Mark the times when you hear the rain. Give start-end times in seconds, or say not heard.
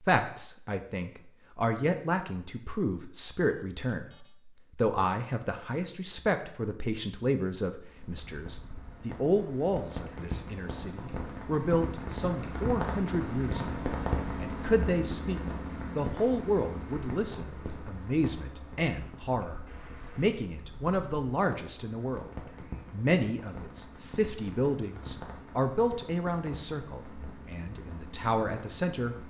7.8-29.2.